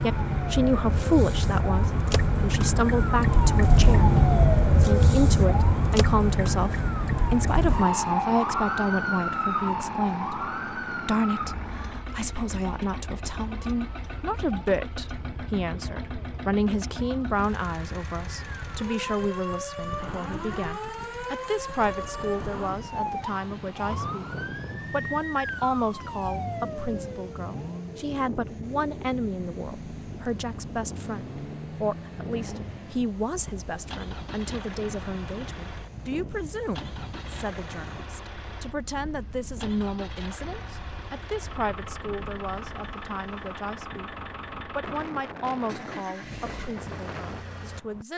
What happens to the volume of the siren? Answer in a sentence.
The loudness of the siren goes down, then up.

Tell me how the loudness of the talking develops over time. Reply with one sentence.
The loudness of the talking goes down.